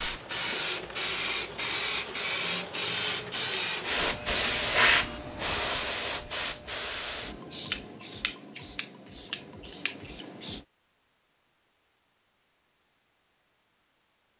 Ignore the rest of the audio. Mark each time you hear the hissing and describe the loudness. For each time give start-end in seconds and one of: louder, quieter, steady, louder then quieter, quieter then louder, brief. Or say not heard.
0.0-10.7 quieter.